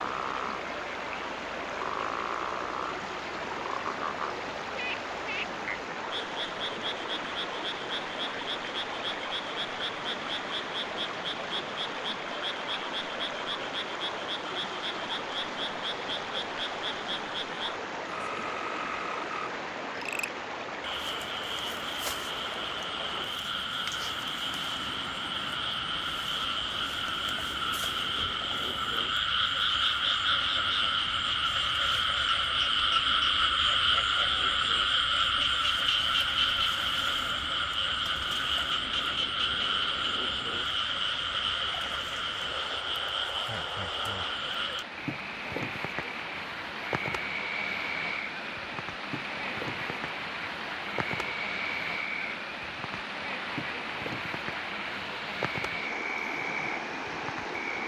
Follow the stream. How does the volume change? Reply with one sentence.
The loudness of the stream goes down, then up.